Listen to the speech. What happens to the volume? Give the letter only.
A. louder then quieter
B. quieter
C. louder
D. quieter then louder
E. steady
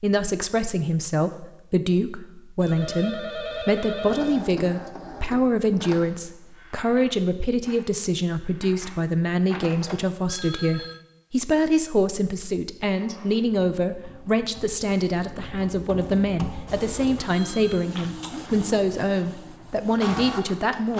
E.